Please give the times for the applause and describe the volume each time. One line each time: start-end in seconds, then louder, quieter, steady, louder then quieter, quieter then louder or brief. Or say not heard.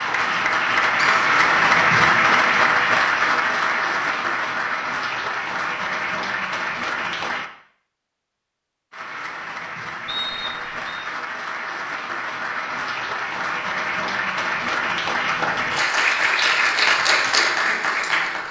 0.0-7.5 quieter
8.9-18.4 louder.